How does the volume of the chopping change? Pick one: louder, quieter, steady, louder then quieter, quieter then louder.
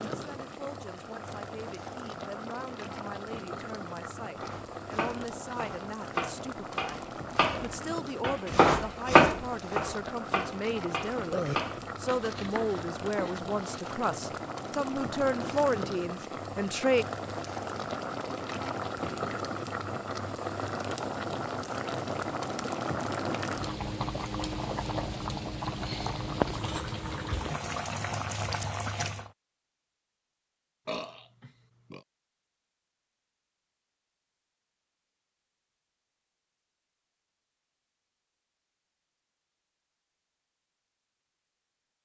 louder then quieter.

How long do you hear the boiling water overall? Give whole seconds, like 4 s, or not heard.
29 s.